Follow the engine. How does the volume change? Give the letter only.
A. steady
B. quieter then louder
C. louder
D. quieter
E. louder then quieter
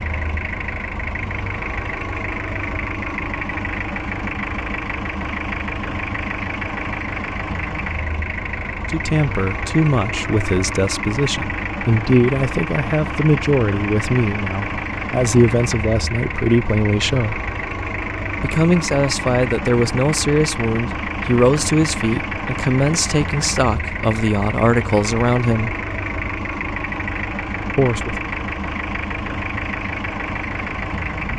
A.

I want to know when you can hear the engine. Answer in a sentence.
You can hear the engine from 0.0 to 31.3 s.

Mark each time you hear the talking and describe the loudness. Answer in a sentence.
The talking can be heard from 8.7 to 17.4 s, at a steady volume; from 18.4 to 25.8 s, at a steady volume; and briefly from 27.8 to 28.2 s.